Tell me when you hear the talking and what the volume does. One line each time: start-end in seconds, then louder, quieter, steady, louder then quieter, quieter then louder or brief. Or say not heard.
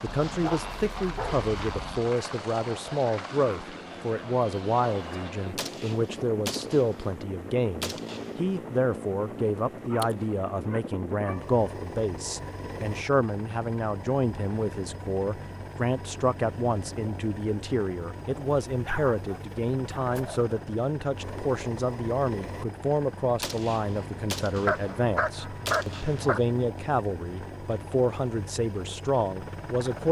0.0-30.0 steady.